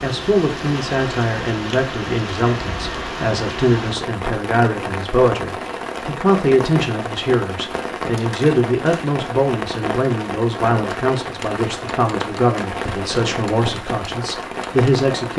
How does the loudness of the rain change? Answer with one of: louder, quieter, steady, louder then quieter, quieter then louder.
steady.